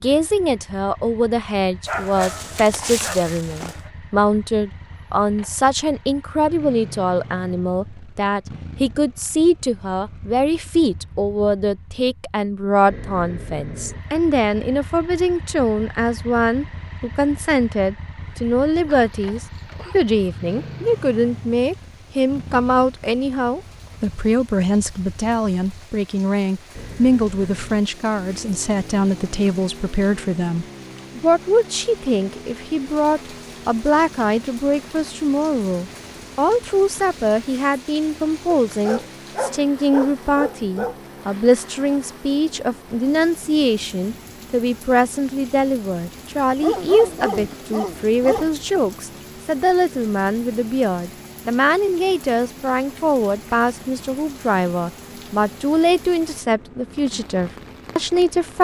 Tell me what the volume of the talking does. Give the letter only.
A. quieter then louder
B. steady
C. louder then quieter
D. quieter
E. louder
B.